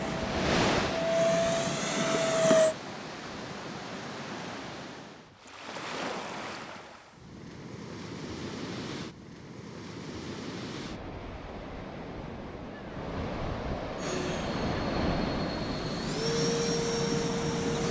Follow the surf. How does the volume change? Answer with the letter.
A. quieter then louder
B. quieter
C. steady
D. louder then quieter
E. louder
A.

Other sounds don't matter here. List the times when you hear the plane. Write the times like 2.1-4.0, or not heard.
0.0-2.8, 13.9-17.8.